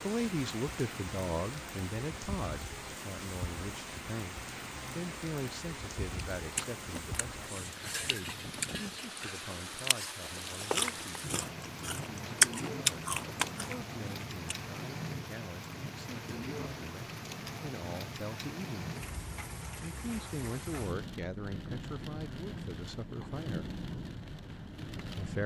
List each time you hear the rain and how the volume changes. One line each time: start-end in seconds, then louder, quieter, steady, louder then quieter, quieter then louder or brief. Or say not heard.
0.0-25.4 steady.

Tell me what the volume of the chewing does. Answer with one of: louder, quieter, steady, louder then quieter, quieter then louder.
louder.